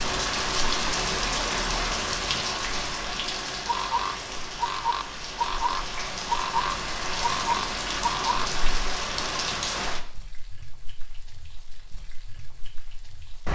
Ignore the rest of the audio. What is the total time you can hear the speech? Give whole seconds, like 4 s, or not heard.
not heard.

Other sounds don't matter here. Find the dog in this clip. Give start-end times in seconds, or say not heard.
not heard.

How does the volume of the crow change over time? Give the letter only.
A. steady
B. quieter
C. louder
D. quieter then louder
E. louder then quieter
A.